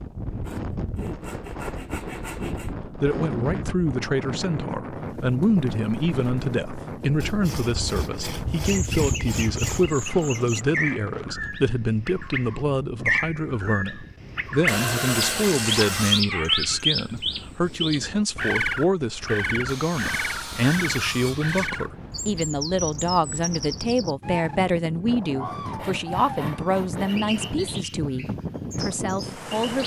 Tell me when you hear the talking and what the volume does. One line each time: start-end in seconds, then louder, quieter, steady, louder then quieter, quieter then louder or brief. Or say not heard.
3.0-29.8 steady.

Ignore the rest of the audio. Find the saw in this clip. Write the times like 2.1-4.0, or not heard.
0.4-2.8, 7.2-9.9, 14.7-16.2, 19.6-21.7, 25.8-27.8.